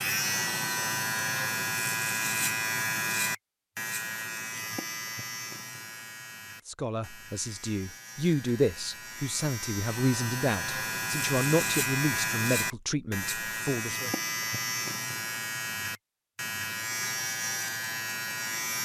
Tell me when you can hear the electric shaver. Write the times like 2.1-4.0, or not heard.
0.0-18.8.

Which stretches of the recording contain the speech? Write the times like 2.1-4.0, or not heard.
6.7-14.1.